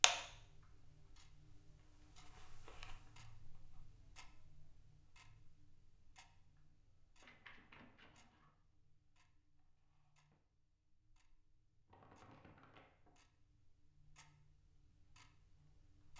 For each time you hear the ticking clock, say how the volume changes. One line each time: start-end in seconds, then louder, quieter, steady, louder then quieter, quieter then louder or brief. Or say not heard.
0.0-16.1 quieter then louder.